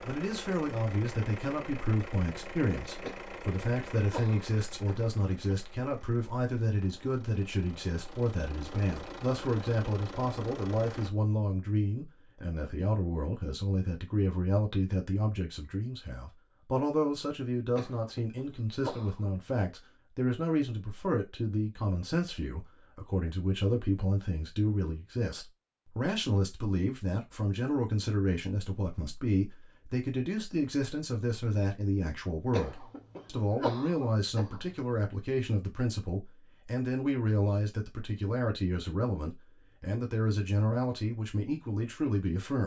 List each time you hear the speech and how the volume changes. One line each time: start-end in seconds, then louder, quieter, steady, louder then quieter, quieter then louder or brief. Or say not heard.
0.0-42.6 steady.